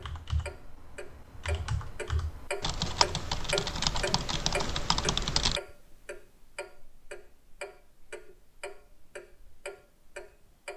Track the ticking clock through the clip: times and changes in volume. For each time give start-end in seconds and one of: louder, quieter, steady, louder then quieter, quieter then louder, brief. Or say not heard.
0.0-10.7 louder then quieter.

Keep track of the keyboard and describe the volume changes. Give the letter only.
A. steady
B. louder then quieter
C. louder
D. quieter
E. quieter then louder
C.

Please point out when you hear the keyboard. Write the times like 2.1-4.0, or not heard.
0.0-5.6.